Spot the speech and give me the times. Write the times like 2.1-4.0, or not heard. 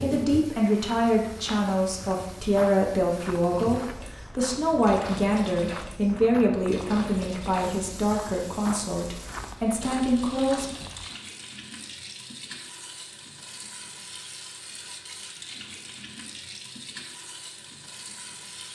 0.0-10.8.